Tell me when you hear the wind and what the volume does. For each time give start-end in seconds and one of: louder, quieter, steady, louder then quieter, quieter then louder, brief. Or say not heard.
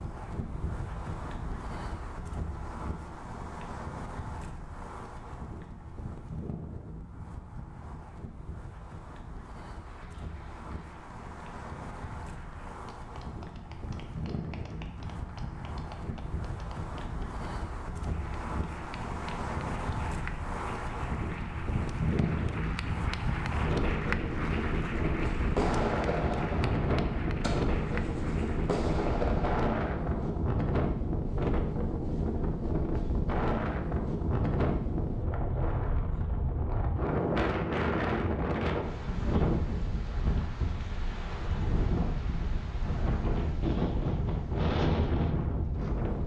0.0-46.2 louder.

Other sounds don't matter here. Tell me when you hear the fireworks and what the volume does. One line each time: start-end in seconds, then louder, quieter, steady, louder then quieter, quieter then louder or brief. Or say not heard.
25.4-30.4 quieter then louder.